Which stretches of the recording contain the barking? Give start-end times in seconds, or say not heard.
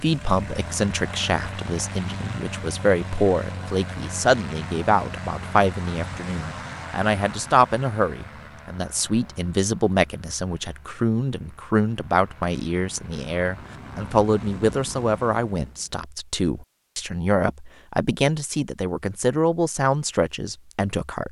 not heard.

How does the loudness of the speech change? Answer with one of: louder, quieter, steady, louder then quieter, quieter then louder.
steady.